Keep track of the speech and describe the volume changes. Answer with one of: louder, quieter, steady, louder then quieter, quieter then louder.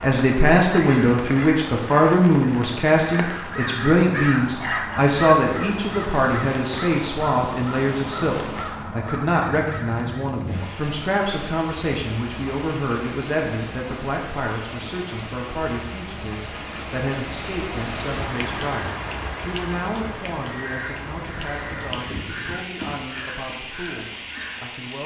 quieter.